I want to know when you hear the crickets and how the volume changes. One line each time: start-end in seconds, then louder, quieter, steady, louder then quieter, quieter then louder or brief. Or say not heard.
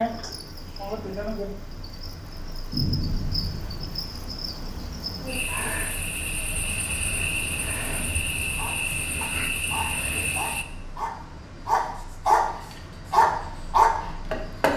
0.0-10.7 louder.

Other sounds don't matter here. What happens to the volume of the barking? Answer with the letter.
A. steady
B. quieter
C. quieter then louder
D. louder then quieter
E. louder
E.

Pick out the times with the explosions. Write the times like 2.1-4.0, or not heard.
2.7-4.0.